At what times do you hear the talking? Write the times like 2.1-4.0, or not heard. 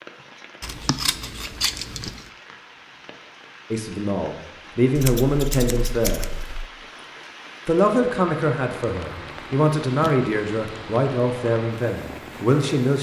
3.7-6.2, 7.7-12.9.